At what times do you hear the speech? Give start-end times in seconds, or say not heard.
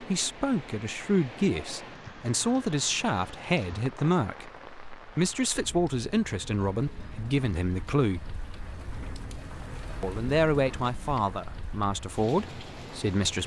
0.0-8.3, 10.0-13.4.